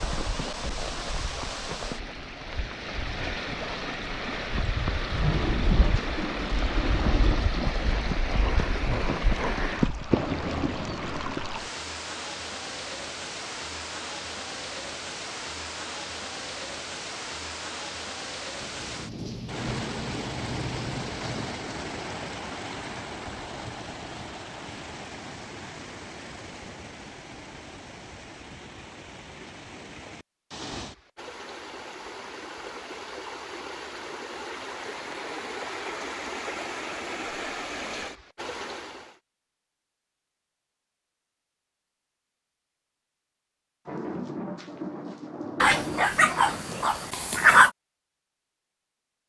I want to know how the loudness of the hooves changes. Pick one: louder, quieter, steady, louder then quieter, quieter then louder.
louder.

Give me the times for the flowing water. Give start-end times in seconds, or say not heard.
0.0-39.2.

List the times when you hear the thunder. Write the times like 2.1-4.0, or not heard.
5.2-8.2, 18.6-21.6, 43.9-46.9.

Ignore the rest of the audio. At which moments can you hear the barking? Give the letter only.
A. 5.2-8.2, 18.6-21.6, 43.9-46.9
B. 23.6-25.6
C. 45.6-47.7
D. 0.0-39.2
C.